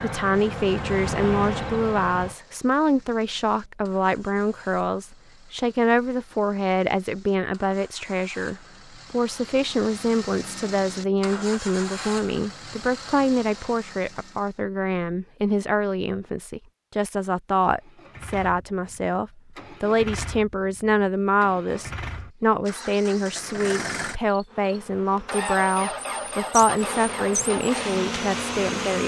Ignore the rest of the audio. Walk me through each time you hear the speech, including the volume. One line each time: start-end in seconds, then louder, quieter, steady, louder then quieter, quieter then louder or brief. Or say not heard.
0.0-29.0 steady.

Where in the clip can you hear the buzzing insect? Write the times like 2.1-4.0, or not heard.
0.0-2.4, 24.4-29.0.